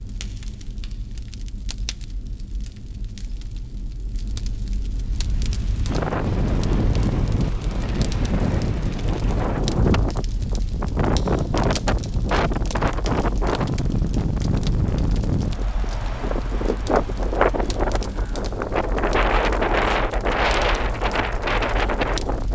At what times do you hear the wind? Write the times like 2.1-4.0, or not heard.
4.9-22.5.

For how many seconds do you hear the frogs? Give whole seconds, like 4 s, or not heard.
not heard.